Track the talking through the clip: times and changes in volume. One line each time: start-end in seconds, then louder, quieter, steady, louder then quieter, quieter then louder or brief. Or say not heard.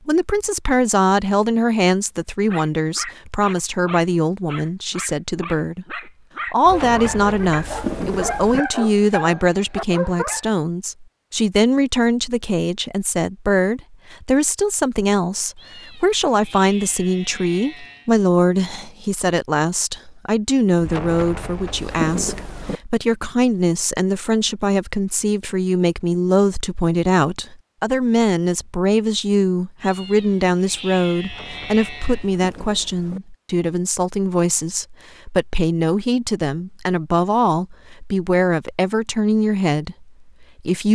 0.1-40.8 steady.